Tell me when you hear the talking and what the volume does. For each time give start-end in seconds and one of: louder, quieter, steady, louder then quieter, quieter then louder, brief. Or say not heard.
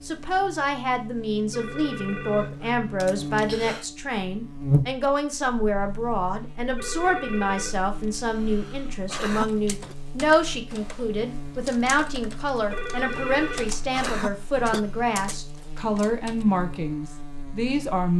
0.0-18.1 steady.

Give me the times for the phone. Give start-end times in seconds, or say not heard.
1.5-2.8, 6.8-7.8, 12.7-13.8.